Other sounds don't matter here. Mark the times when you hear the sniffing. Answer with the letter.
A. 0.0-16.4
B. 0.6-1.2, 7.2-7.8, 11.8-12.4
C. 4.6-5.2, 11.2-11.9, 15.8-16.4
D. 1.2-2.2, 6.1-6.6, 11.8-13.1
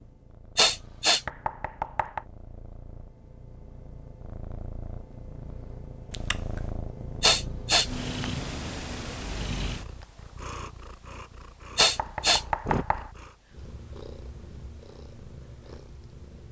B.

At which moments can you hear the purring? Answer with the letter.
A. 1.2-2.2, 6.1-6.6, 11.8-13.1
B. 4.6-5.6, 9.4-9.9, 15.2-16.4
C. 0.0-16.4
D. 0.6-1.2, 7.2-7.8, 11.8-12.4
C.